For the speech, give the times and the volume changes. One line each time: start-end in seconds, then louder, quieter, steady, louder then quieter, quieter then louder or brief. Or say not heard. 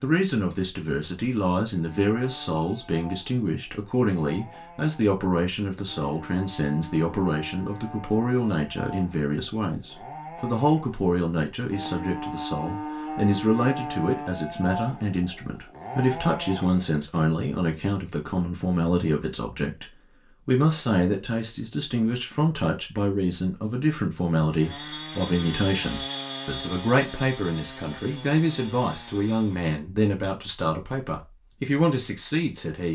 0.0-32.8 steady.